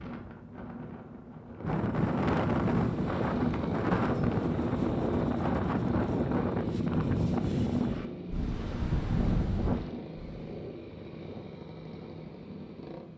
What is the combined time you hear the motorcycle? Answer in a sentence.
The motorcycle can be heard for 10 seconds in total.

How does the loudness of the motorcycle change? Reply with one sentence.
The loudness of the motorcycle goes down.